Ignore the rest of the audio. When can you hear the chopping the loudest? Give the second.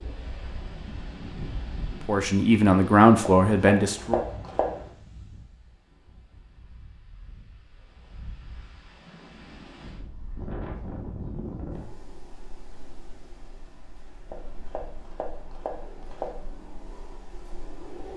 4 s.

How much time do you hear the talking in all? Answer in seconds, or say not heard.
2 s.